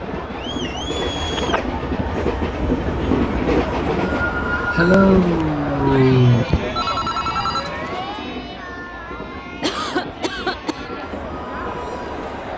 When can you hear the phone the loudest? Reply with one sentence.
The loudest moment of the phone is at 7 seconds.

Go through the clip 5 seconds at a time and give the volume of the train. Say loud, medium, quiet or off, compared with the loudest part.
loud, medium, medium.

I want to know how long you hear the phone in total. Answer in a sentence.
You can hear the phone for 2 seconds altogether.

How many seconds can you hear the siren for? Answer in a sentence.
You can hear the siren for 4 seconds altogether.